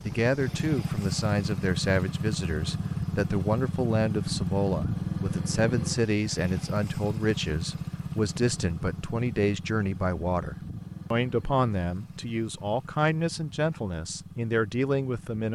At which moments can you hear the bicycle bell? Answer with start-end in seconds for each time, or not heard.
not heard.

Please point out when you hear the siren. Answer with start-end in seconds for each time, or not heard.
not heard.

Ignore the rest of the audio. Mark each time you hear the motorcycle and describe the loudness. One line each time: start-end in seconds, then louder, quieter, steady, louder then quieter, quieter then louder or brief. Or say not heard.
0.0-15.5 quieter.